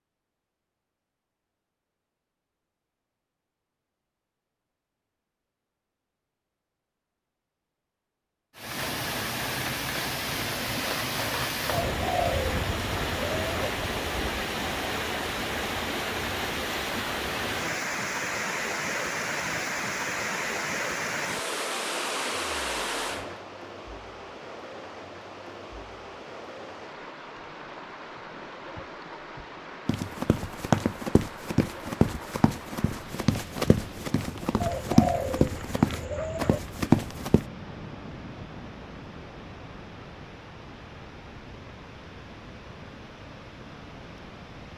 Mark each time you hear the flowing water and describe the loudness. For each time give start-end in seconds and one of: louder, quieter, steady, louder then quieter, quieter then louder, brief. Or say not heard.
8.6-44.7 quieter.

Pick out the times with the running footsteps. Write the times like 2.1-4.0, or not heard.
29.9-37.5.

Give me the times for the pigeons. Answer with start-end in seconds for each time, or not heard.
11.7-13.8, 34.6-36.6.